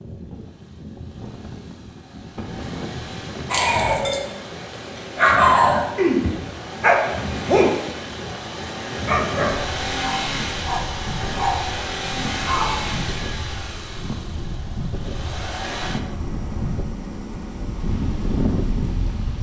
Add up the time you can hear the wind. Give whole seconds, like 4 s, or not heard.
19 s.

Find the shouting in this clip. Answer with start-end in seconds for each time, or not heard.
not heard.